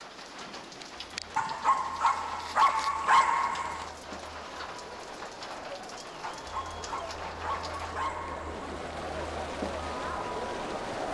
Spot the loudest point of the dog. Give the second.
3 s.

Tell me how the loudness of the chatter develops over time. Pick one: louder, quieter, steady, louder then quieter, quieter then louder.
louder.